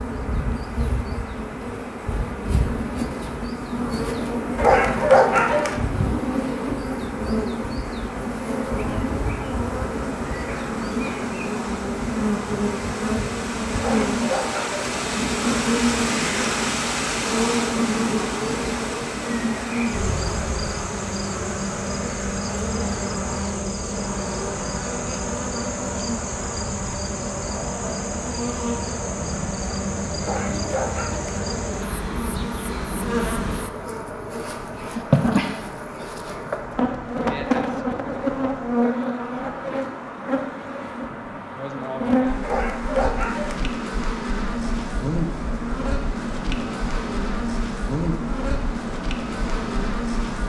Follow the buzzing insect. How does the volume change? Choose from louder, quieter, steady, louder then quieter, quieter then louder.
steady.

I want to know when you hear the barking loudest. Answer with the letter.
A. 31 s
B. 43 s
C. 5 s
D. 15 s
C.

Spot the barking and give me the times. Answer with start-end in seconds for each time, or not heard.
4.5-5.8, 13.8-14.8, 30.2-31.4, 42.4-43.6.